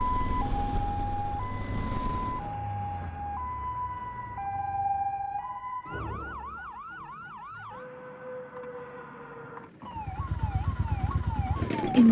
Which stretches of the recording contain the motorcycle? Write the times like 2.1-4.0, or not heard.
0.0-2.5, 9.9-12.0.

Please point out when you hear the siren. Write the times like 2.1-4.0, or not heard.
0.0-12.0.